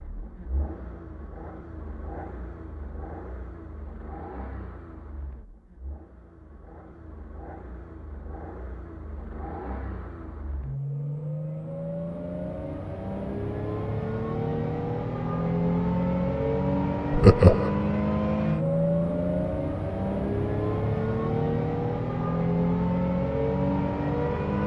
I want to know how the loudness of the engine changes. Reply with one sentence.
The loudness of the engine goes up.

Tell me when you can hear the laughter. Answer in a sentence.
The laughter can be heard from 17.1 to 17.7 s.